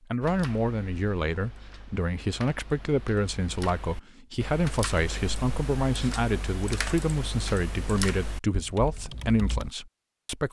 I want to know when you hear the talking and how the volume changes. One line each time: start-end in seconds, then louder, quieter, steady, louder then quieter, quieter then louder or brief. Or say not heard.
0.1-10.4 steady.